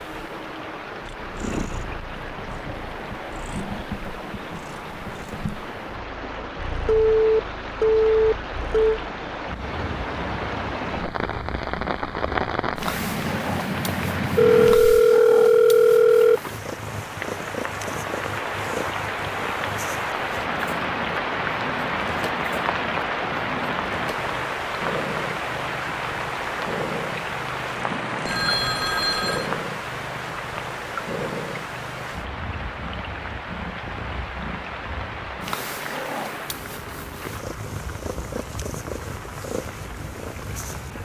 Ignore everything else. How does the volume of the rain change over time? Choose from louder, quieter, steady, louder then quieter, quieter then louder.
louder then quieter.